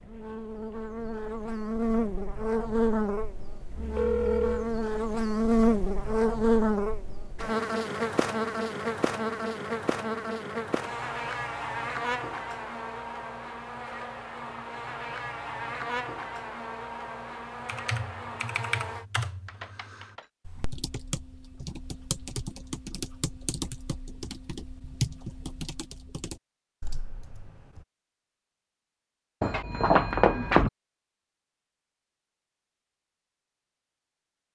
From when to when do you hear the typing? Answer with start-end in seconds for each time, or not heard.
17.6-27.9.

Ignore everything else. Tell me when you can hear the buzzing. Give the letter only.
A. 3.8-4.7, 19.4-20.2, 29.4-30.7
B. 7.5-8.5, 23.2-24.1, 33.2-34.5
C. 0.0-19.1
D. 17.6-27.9
C.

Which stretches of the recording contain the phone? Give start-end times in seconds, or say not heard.
3.8-4.7, 19.4-20.2, 29.4-30.7.